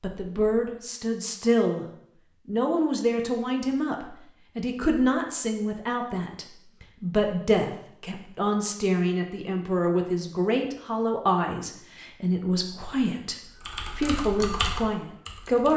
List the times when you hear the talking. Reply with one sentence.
You can hear the talking from 0.0 to 1.9 s and from 2.5 to 15.7 s.